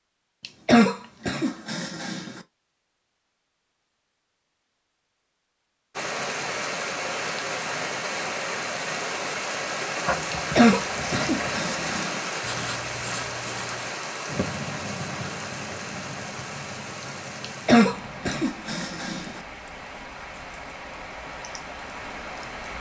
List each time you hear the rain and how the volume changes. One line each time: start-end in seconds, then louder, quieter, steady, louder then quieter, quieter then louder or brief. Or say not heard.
6.0-22.7 quieter.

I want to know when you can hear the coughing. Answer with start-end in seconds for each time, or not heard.
0.4-2.4, 10.3-12.2, 17.6-19.4.